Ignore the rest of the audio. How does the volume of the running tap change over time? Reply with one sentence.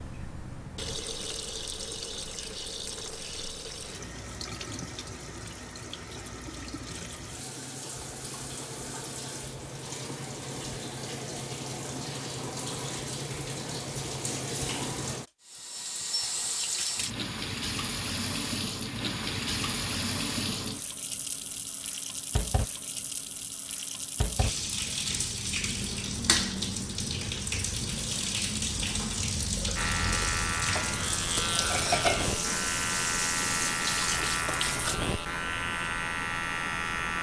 The volume of the running tap goes up.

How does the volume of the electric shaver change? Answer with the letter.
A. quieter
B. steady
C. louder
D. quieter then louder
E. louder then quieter
B.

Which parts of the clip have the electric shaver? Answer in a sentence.
You can hear the electric shaver from 29.8 to 37.1 s.